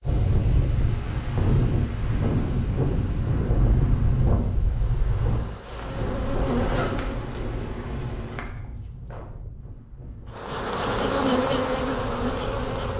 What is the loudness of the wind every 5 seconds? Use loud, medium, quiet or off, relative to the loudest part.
loud, medium, quiet.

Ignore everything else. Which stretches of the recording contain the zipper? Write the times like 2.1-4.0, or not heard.
6.5-8.4.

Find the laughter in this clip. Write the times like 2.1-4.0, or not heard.
not heard.